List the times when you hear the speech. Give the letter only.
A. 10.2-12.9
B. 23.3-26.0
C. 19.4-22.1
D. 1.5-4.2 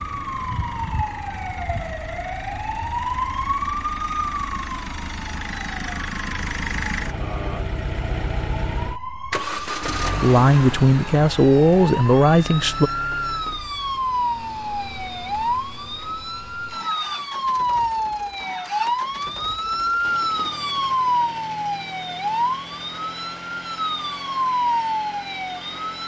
A.